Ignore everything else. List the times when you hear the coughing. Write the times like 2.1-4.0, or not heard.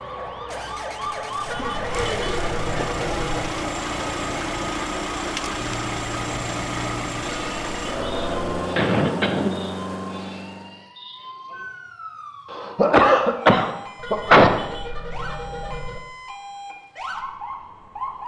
1.6-2.9, 8.8-9.5, 12.5-14.5.